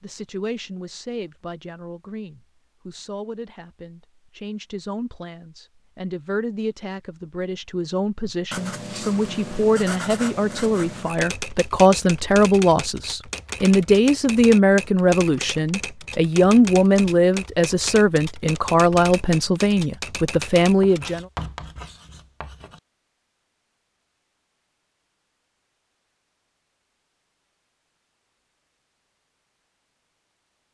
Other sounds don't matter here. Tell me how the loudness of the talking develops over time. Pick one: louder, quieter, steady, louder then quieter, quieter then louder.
louder.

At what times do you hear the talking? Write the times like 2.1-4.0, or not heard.
0.0-21.2.